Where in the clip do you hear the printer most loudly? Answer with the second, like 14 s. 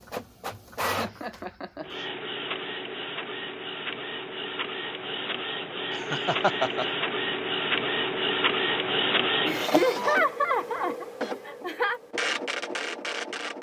9 s.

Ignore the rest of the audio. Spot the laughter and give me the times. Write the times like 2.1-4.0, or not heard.
0.8-2.0, 6.0-6.8, 9.4-12.0.